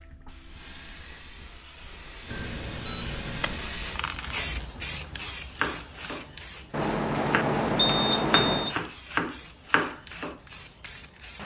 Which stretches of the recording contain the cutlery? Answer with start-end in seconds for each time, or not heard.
not heard.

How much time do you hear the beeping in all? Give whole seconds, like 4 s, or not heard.
3 s.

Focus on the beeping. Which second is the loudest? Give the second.
8 s.